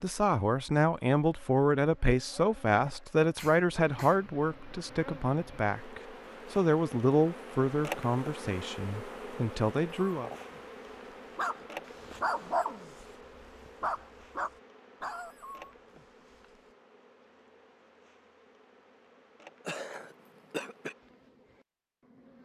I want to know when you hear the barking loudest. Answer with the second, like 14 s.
12 s.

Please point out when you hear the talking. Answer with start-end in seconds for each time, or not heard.
0.0-10.3.